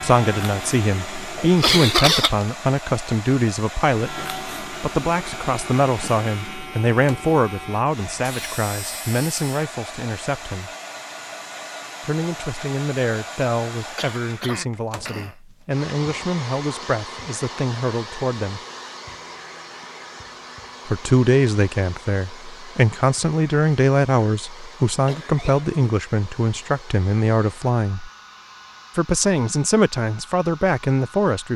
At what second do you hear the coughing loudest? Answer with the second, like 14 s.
2 s.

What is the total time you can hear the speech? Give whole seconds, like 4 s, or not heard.
27 s.